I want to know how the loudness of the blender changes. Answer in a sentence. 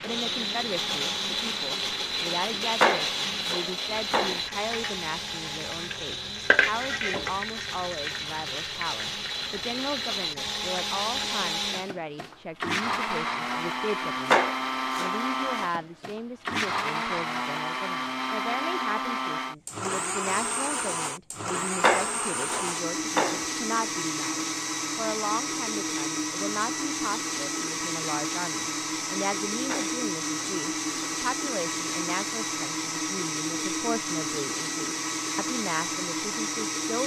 The volume of the blender stays about the same.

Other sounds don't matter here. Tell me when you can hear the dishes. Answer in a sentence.
You can't hear the dishes here.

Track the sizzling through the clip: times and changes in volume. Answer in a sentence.
You can hear the sizzling from 0.0 to 11.6 s, getting louder then quieter.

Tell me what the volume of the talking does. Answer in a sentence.
The loudness of the talking stays about the same.